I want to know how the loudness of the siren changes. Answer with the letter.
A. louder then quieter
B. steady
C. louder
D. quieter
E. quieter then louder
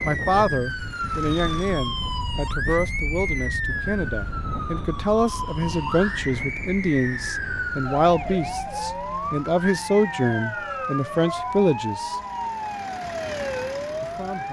B.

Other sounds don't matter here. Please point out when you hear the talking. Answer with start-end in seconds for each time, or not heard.
0.0-12.2, 14.0-14.4.